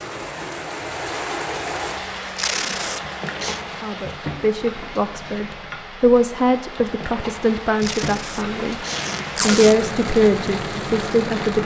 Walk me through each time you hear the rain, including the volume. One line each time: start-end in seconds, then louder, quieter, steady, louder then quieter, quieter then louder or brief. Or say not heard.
0.0-11.6 quieter then louder.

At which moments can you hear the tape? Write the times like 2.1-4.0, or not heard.
2.4-3.6, 7.8-9.8.